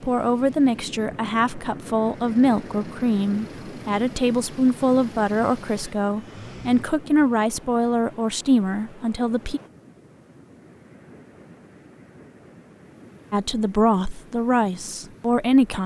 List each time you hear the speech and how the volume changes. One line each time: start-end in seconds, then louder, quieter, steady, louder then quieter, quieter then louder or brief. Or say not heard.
0.0-9.6 steady
13.3-15.8 brief.